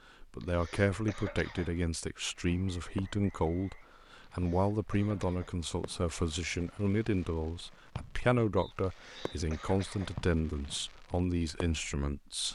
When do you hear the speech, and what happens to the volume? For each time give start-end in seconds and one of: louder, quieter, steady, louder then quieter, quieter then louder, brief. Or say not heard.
0.2-12.5 steady.